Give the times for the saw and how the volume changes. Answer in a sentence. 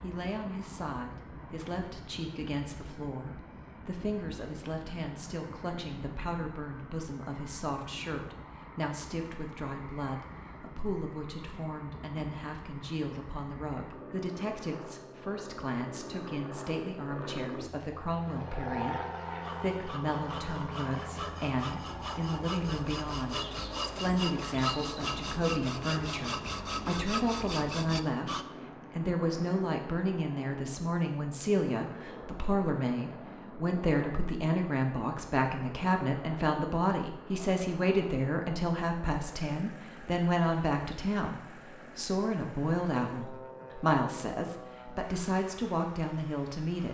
You can hear the saw from 19.3 to 28.4 s, getting louder.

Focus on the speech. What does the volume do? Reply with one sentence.
The loudness of the speech goes up.